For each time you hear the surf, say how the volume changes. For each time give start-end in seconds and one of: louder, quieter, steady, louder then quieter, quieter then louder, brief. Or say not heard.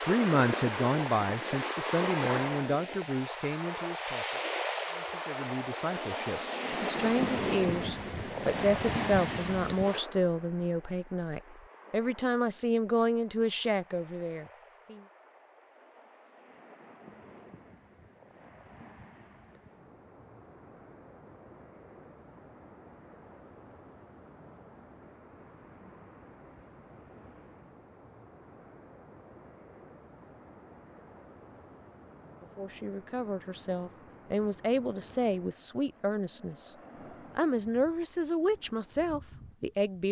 0.0-40.0 quieter.